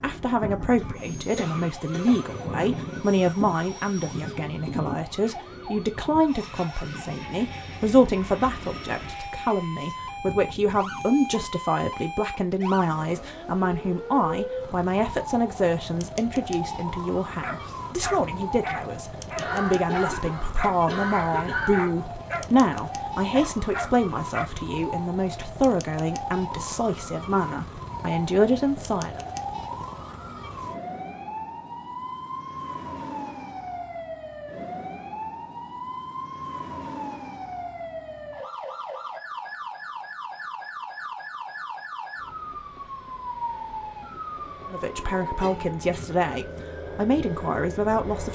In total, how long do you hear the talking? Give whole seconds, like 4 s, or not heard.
33 s.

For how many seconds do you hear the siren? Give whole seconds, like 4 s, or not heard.
48 s.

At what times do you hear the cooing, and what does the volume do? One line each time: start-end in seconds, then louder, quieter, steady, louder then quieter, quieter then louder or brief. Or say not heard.
not heard.